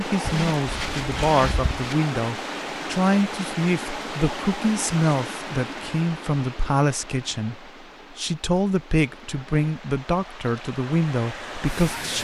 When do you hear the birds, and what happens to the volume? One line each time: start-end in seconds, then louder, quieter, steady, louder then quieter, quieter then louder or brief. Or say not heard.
not heard.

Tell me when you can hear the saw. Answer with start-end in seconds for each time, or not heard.
0.2-1.9.